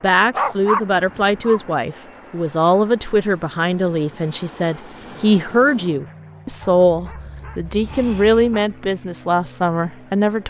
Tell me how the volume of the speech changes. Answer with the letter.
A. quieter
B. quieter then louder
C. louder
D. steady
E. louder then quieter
D.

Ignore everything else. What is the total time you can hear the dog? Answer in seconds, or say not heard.
3 s.